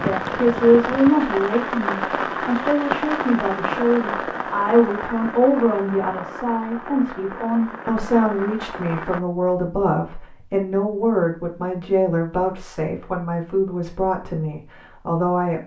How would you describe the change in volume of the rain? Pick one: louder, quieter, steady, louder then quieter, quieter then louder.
quieter.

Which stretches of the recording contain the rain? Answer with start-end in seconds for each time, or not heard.
0.0-9.2.